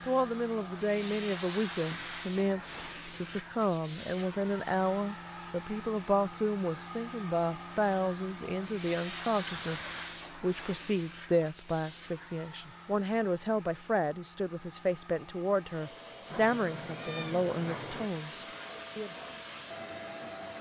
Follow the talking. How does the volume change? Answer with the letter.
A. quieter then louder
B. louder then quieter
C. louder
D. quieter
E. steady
E.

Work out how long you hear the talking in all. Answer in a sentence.
You can hear the talking for 19 seconds altogether.